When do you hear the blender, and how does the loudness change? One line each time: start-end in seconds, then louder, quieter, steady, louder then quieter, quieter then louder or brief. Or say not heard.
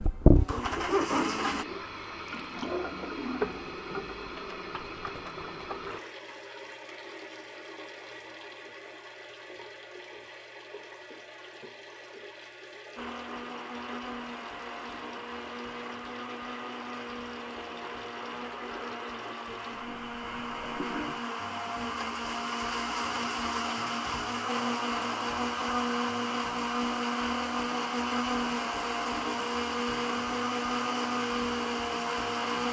0.0-1.6 brief
12.9-32.6 louder.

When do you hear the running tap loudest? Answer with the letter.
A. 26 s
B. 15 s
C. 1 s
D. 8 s
C.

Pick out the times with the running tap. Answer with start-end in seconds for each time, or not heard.
0.0-21.2.